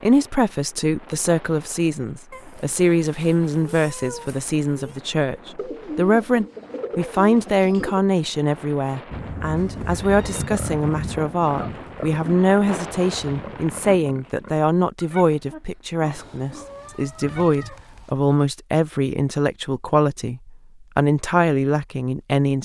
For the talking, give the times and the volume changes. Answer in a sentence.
You can hear the talking from 0.0 to 22.6 s, at a steady volume.